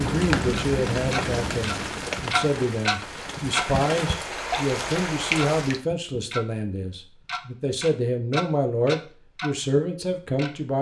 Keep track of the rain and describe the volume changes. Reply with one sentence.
The volume of the rain goes down, then up.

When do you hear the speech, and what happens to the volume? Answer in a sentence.
You can hear the speech from 0.0 to 10.7 s, at a steady volume.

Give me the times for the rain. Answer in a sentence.
You can hear the rain from 0.0 to 5.8 s.